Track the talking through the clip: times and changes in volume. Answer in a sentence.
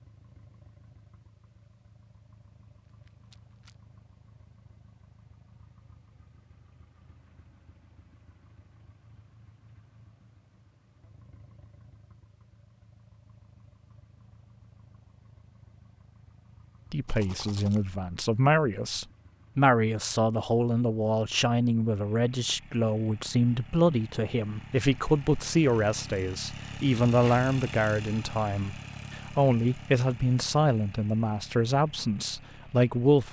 The talking can be heard from 16.9 to 33.2 s, at a steady volume.